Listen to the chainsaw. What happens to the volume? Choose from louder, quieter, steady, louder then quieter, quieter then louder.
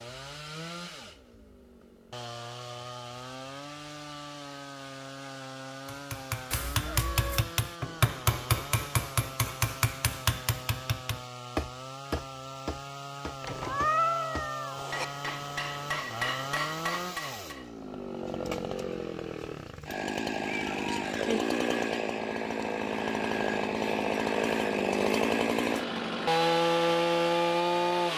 louder.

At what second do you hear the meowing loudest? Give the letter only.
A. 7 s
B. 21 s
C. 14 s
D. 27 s
C.